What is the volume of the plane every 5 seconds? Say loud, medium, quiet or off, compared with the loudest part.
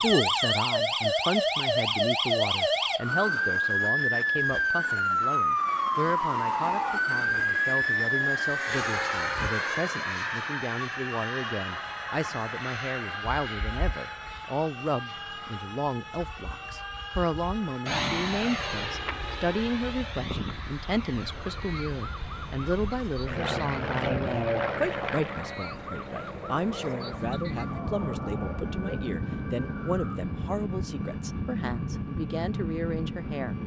quiet, loud, loud, loud, loud, loud, loud.